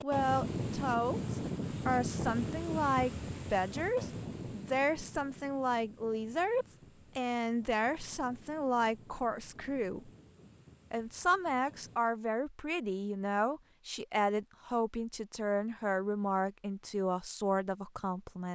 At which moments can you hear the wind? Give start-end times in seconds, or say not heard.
0.0-12.0.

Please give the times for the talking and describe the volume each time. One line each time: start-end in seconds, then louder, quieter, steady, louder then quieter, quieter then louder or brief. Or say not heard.
0.0-10.1 steady
10.9-18.5 steady.